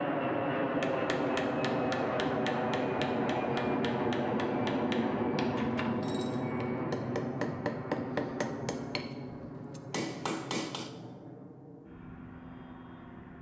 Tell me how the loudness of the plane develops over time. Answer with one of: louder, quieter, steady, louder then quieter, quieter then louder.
quieter.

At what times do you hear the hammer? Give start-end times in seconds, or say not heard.
0.8-10.9.